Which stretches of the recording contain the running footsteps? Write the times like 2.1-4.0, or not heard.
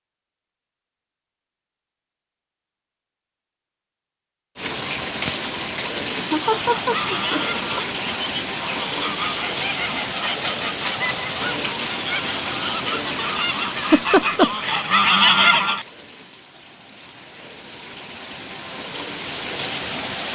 not heard.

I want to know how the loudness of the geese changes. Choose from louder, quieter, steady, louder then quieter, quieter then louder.
louder.